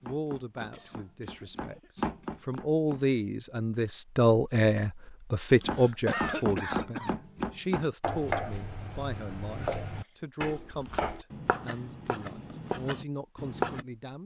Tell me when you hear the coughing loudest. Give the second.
6 s.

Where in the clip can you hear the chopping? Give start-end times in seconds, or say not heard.
0.0-3.1, 5.5-13.8.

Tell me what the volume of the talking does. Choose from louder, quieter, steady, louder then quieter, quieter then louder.
louder then quieter.